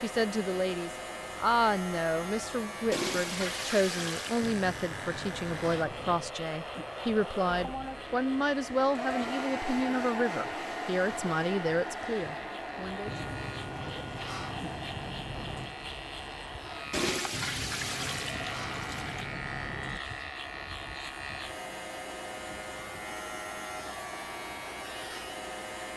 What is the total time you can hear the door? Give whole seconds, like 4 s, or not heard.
7 s.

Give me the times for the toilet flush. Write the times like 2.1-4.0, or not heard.
2.9-4.5, 16.9-19.2.